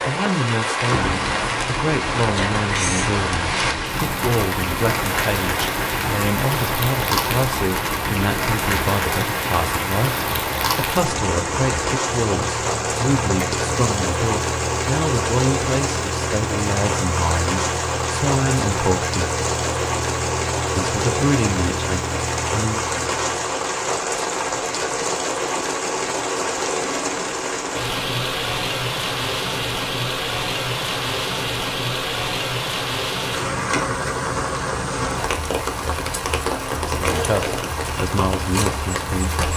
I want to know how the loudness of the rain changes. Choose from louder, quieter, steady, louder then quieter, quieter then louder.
steady.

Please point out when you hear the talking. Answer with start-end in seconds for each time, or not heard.
0.1-19.3, 20.8-22.8, 36.8-39.4.